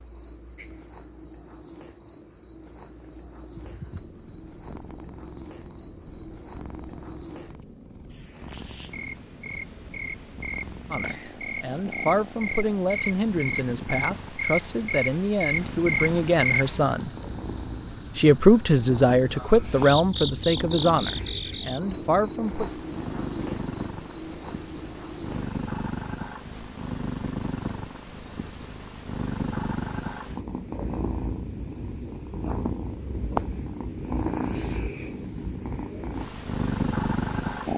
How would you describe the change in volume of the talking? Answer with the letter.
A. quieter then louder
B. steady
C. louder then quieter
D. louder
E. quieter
C.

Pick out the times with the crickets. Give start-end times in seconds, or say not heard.
0.0-26.2.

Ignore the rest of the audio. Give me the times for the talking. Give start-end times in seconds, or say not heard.
10.9-17.1, 18.1-22.7.